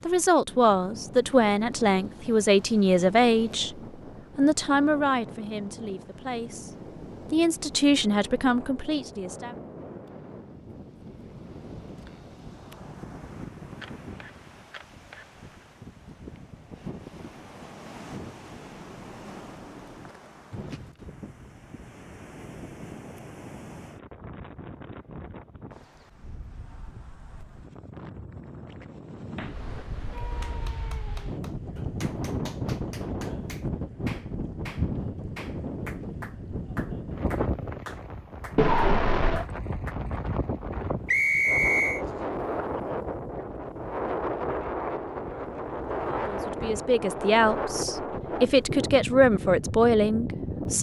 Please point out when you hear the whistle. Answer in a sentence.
You can hear the whistle from 41.0 to 42.0 s.